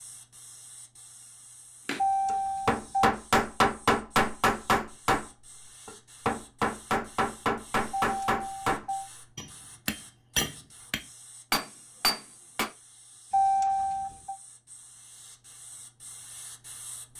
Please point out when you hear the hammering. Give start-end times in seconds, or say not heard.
1.9-5.2, 5.8-12.7.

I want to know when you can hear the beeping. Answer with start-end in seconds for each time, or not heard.
1.9-3.1, 7.9-9.1, 13.3-14.3.